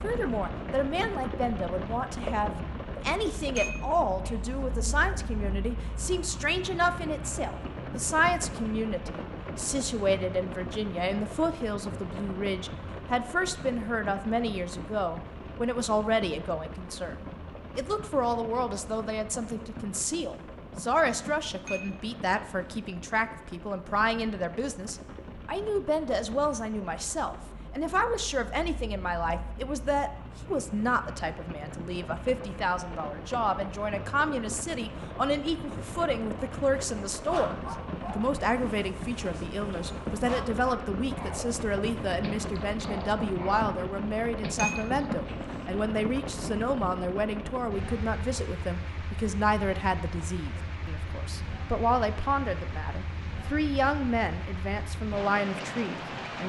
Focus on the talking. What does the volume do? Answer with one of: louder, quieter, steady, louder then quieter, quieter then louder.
steady.